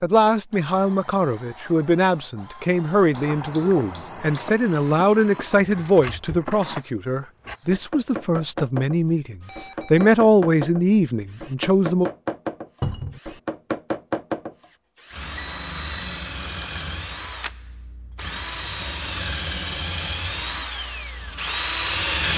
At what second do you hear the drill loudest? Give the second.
22 s.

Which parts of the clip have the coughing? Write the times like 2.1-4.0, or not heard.
not heard.